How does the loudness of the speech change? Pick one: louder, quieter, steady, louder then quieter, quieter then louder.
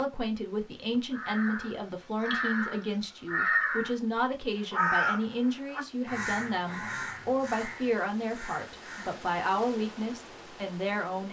steady.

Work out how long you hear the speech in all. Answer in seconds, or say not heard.
11 s.